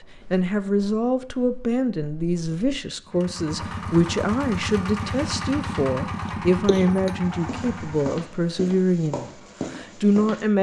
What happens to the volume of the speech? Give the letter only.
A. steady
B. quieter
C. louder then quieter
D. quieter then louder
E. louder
A.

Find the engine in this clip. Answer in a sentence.
You can hear the engine from 3.0 to 8.2 s.